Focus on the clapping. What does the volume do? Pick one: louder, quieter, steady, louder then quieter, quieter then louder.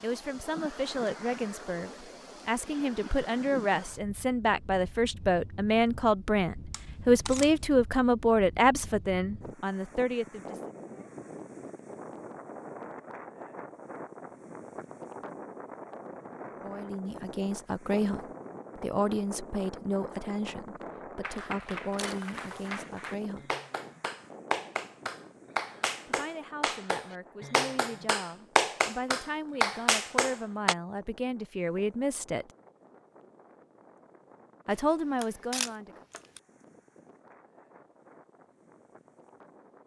louder.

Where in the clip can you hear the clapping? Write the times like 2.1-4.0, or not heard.
21.2-30.8.